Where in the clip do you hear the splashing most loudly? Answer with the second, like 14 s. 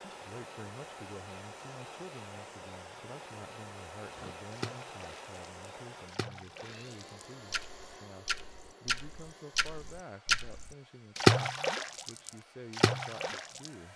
11 s.